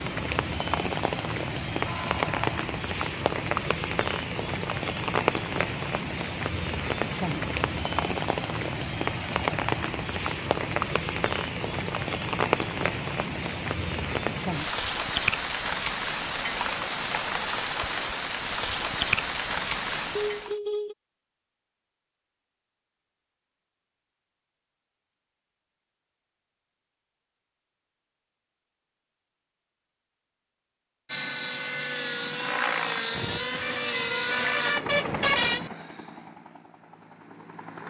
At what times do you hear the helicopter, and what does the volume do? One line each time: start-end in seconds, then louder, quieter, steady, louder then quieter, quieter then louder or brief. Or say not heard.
31.1-37.8 quieter.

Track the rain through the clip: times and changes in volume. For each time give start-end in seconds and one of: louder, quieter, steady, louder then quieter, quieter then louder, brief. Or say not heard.
0.0-20.6 steady.